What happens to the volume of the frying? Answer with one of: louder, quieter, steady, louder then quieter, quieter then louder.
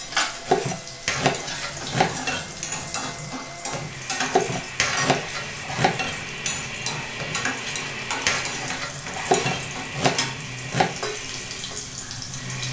steady.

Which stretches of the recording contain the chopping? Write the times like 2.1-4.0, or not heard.
0.5-2.2, 4.3-6.0, 9.2-10.9.